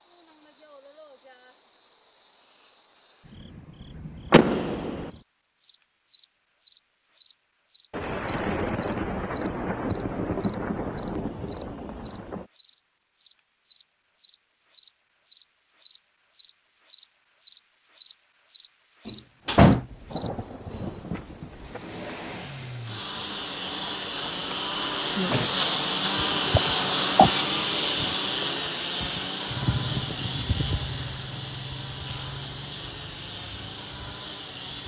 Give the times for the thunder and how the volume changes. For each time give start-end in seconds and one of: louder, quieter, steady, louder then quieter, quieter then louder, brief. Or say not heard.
7.9-12.4 quieter
19.9-21.8 brief.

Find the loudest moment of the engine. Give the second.
27 s.